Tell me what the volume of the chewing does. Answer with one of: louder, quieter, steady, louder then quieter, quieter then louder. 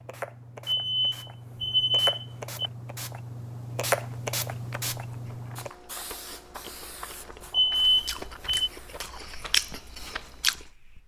louder.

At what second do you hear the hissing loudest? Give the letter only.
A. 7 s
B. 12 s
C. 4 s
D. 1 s
C.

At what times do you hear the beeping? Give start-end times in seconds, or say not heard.
0.7-2.7, 7.5-8.7.